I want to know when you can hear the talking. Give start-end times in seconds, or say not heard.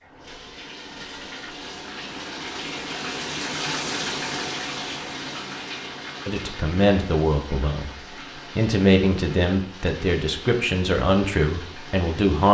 6.2-7.9, 8.6-12.4.